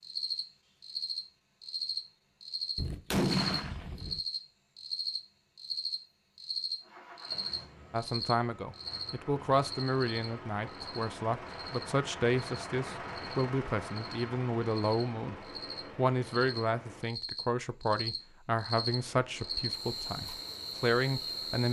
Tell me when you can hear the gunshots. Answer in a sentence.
You can hear the gunshots from 2.8 to 4.2 s.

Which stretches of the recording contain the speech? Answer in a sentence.
The speech can be heard from 7.9 to 15.3 s and from 15.9 to 21.6 s.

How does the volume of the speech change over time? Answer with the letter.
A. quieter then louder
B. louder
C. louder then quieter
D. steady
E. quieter
D.